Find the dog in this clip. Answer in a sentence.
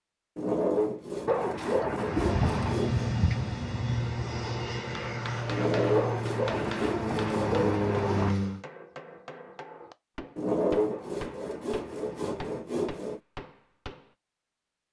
The dog can be heard from 1.2 to 2.8 s, from 6.0 to 8.3 s and from 10.9 to 12.7 s.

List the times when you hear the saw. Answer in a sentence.
The saw can be heard from 0.3 to 3.1 s, from 5.5 to 7.6 s and from 10.3 to 13.2 s.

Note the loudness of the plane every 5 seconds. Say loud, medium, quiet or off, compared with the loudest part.
loud, loud, off.